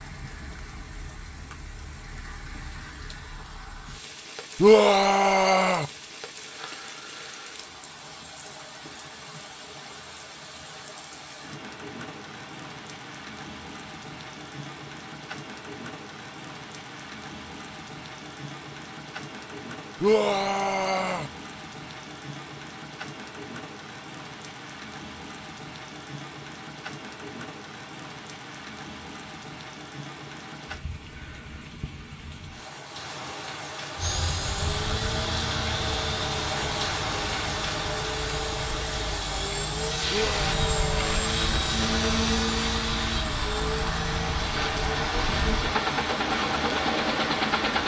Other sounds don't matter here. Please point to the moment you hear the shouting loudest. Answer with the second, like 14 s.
5 s.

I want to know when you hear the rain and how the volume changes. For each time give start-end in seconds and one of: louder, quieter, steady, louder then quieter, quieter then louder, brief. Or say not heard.
0.0-47.8 louder.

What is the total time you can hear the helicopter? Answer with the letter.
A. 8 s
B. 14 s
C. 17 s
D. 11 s
B.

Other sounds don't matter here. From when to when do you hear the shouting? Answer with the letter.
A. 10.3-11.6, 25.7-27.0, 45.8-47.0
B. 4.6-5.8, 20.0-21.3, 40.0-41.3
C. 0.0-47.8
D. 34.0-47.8
B.